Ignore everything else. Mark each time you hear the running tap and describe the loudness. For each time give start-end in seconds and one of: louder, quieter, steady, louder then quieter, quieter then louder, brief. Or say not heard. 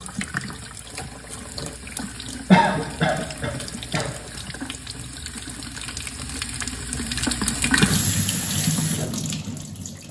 0.0-10.0 louder.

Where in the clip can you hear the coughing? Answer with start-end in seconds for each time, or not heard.
2.5-4.0.